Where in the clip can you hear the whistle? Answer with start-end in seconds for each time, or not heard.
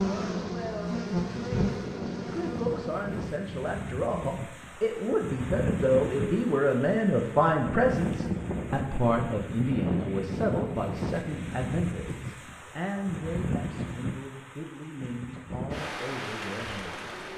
not heard.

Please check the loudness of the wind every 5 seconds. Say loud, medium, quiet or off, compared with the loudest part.
medium, loud, loud, loud.